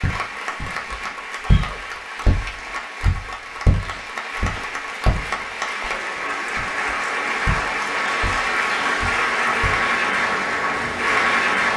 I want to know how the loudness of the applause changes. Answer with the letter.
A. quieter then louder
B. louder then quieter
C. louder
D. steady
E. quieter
C.